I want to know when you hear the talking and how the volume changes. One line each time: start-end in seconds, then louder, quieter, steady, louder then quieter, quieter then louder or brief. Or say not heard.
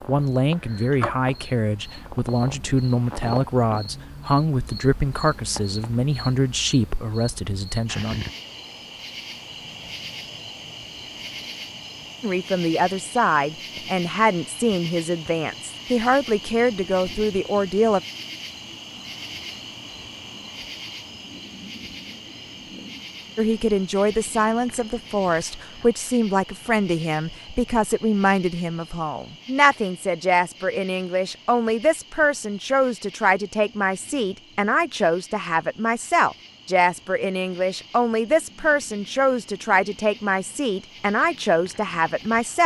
0.1-8.2 steady
12.2-18.0 steady
23.4-42.6 steady.